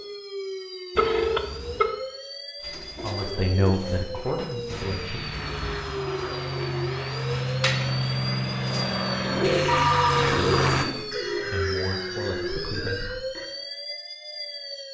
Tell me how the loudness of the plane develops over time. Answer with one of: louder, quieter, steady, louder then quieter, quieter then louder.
louder.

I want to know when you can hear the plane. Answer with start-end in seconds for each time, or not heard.
4.7-10.8.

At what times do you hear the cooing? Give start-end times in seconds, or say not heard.
2.6-13.5.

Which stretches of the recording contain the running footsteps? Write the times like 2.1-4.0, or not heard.
not heard.